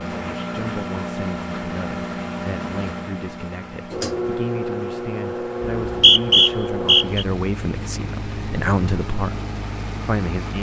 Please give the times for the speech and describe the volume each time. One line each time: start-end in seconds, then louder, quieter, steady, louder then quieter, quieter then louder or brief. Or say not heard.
0.0-10.5 louder.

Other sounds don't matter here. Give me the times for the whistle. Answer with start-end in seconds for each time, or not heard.
5.8-7.2.